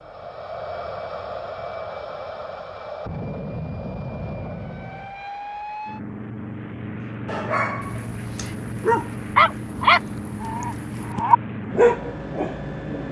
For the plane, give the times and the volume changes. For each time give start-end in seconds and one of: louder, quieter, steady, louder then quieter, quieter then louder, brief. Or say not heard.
0.0-13.0 steady.